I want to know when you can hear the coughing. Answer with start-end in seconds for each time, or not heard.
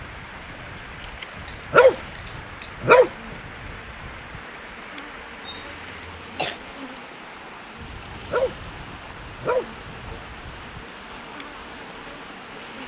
5.5-6.6.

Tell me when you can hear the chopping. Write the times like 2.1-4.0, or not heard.
not heard.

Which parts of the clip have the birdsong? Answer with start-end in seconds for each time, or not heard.
not heard.